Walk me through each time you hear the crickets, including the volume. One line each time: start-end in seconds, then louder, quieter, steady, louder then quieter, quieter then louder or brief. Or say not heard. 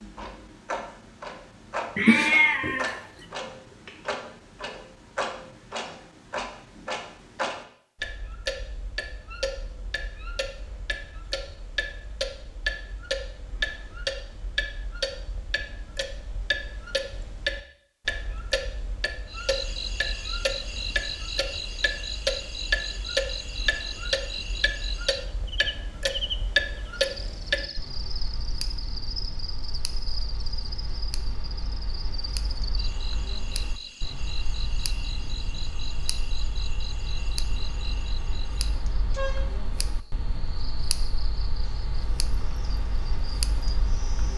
19.2-44.3 quieter.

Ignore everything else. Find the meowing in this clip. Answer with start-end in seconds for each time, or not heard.
1.9-3.0.